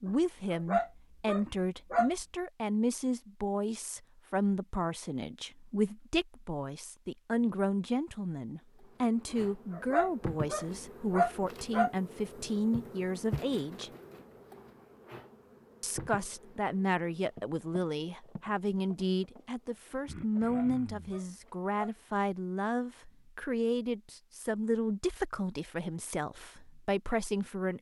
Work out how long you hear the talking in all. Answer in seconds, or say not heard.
26 s.